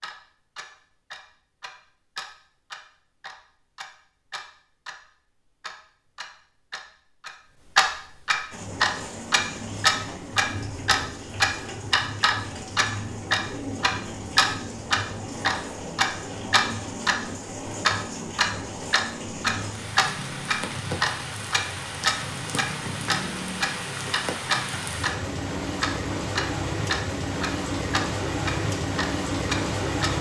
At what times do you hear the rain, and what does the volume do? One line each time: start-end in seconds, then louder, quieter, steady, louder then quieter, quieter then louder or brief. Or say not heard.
8.5-30.1 louder.